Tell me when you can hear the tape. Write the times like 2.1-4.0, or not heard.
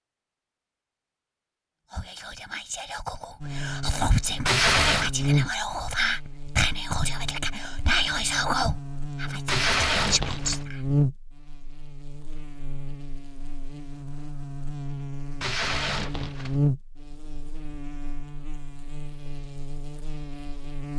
4.5-5.1, 9.4-10.7, 15.4-16.6.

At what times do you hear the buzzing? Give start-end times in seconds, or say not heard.
3.4-20.9.